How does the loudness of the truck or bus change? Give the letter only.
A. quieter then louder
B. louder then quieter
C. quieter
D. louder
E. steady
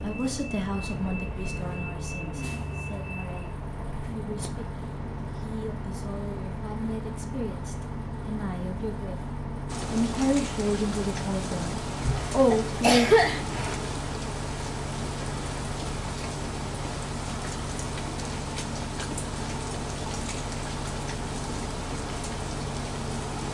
E.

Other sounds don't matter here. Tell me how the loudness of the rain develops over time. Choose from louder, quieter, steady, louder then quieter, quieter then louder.
steady.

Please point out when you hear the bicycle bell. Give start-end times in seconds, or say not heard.
not heard.